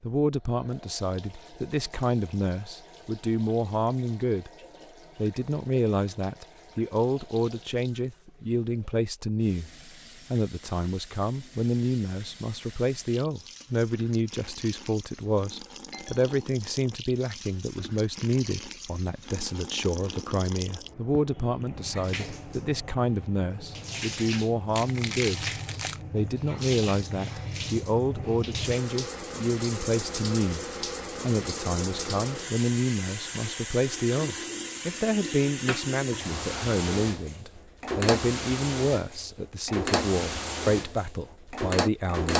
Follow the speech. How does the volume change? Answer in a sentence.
The volume of the speech stays about the same.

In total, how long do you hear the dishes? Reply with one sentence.
The dishes can't be heard in this clip.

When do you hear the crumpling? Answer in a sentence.
The crumpling can be heard from 24.8 to 26.0 s.